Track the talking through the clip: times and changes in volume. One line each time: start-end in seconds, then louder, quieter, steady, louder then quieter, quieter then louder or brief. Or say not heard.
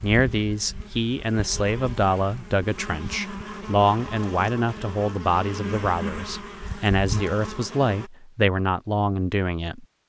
0.0-9.8 steady.